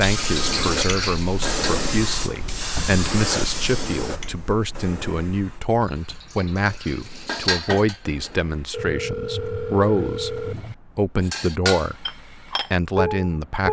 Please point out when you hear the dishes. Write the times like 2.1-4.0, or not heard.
0.0-1.7, 5.9-8.4, 11.2-13.6.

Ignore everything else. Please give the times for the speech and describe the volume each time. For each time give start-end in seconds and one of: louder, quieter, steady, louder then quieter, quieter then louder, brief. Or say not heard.
0.0-13.6 steady.